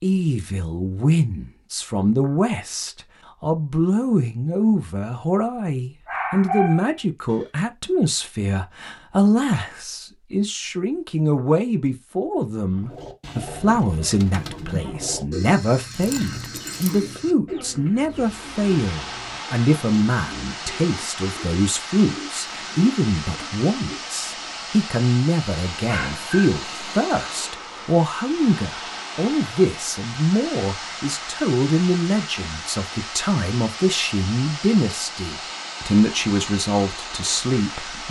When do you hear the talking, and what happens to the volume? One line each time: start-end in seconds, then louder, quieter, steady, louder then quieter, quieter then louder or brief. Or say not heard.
0.0-38.0 steady.